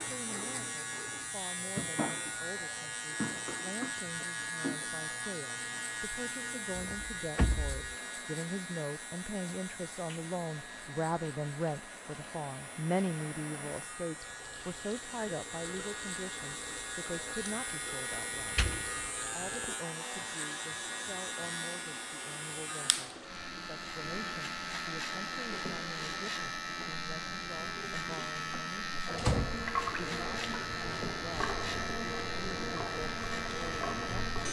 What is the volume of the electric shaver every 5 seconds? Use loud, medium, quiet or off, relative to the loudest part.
loud, loud, medium, loud, loud, loud, loud.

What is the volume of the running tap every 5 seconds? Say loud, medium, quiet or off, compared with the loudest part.
loud, quiet, medium, medium, medium, loud, loud.